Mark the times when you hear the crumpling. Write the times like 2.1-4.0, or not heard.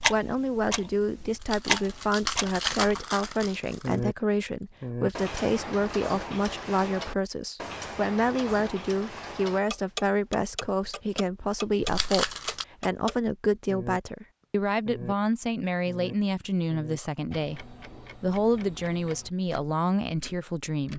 1.4-4.0, 11.8-12.7.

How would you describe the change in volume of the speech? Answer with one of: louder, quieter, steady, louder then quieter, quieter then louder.
steady.